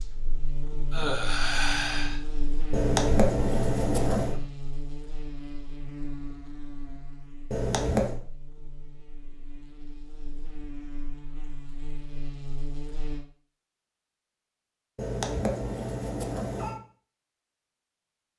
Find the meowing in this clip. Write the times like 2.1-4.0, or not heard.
2.7-4.3, 7.5-8.2, 14.9-16.8.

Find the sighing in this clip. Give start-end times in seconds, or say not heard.
0.9-2.2.